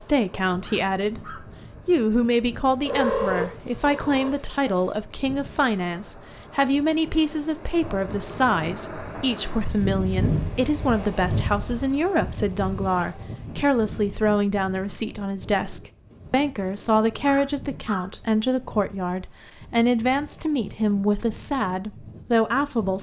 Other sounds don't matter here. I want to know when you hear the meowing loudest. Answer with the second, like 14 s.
3 s.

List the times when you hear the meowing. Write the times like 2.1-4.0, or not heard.
2.9-5.0.